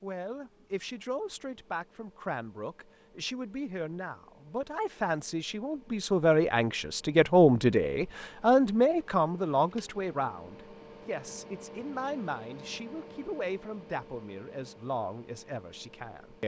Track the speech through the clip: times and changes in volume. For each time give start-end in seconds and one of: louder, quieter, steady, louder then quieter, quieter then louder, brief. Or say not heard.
0.0-16.4 louder then quieter.